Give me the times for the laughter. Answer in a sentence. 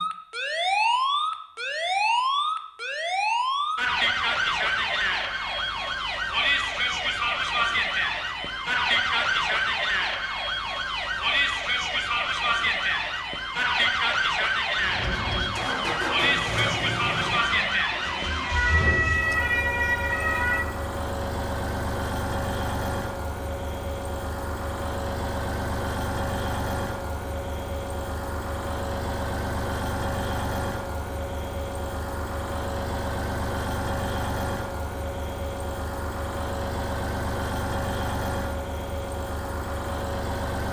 The laughter can't be heard in this clip.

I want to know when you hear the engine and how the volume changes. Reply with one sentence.
You can hear the engine from 14.8 to 40.6 s, at a steady volume.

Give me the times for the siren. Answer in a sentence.
You can hear the siren from 0.0 to 20.6 s.